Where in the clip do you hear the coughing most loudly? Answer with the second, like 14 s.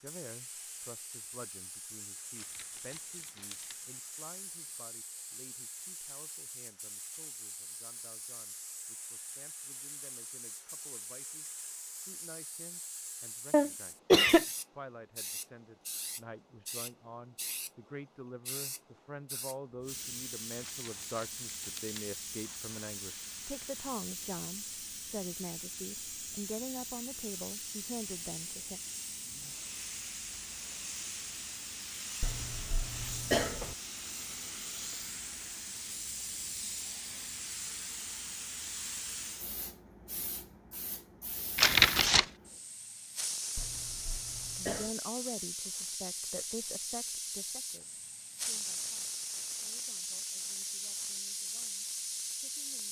14 s.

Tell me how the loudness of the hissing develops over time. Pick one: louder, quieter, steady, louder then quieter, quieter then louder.
louder.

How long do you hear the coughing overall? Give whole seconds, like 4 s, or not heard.
4 s.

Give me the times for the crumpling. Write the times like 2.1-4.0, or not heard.
2.4-3.8, 20.6-22.1, 41.5-42.3.